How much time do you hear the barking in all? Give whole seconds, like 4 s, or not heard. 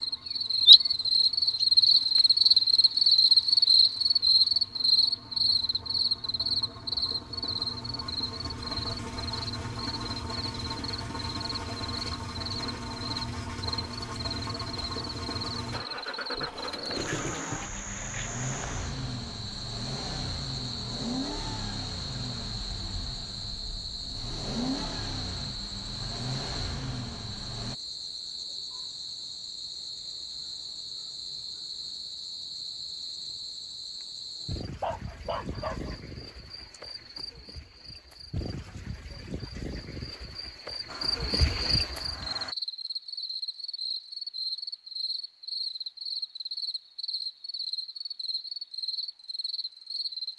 2 s.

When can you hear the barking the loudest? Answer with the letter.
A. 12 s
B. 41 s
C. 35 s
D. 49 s
C.